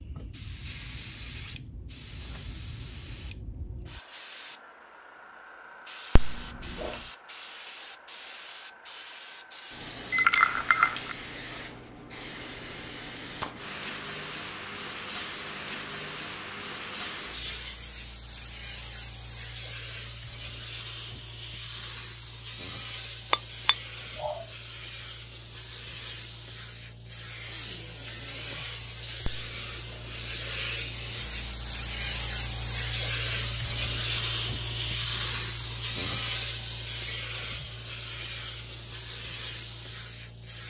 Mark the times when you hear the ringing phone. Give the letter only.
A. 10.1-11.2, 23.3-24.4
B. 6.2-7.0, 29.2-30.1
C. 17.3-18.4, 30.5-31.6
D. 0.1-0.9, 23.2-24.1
B.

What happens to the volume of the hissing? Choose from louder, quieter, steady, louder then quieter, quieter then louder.
louder.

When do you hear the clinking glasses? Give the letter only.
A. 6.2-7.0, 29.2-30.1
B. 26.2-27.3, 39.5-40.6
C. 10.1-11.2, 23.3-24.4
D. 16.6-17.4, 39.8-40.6
C.